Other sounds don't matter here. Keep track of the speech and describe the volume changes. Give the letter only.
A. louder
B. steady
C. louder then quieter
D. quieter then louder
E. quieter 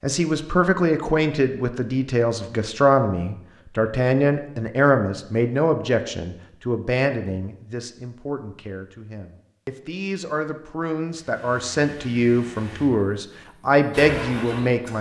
D.